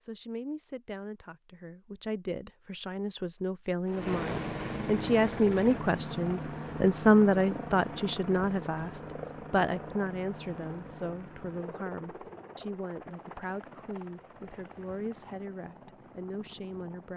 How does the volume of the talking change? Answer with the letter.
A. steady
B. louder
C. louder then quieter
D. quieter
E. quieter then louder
C.